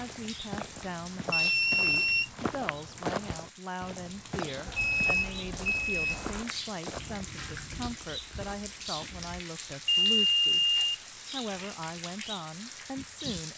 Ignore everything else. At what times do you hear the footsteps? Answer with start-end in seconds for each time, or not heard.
0.0-9.4.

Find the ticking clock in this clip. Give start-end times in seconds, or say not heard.
not heard.